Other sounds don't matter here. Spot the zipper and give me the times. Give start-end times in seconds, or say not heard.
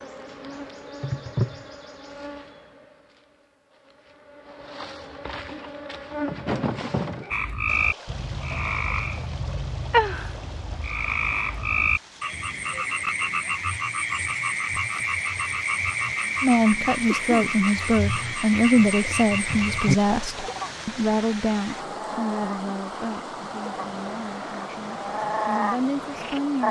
not heard.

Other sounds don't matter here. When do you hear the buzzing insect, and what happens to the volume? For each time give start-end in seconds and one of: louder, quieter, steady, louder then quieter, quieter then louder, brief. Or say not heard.
0.0-7.3 quieter then louder.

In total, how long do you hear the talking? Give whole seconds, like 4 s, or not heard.
10 s.